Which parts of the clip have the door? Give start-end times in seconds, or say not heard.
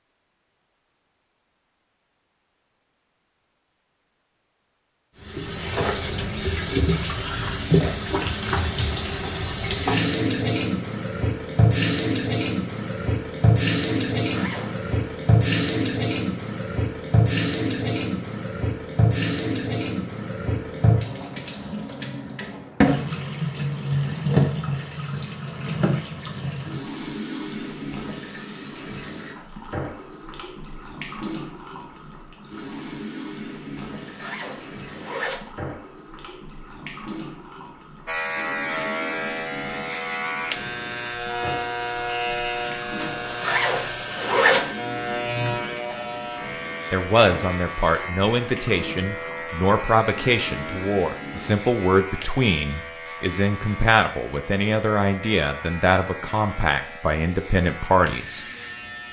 not heard.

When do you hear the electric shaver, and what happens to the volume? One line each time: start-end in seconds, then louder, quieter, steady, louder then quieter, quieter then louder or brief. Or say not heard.
38.0-59.0 quieter.